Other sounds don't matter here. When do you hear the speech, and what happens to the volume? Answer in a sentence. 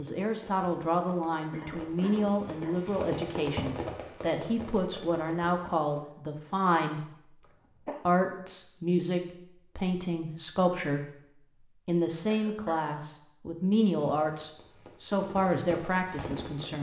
You can hear the speech from 0.0 to 16.7 s, at a steady volume.